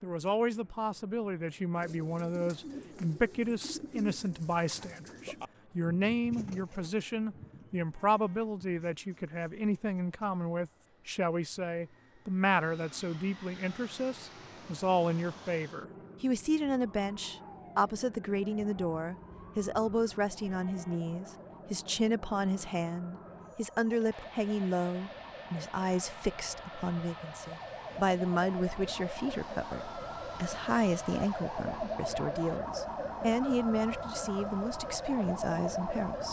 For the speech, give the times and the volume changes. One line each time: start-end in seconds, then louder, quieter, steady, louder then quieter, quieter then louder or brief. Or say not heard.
0.0-36.2 steady.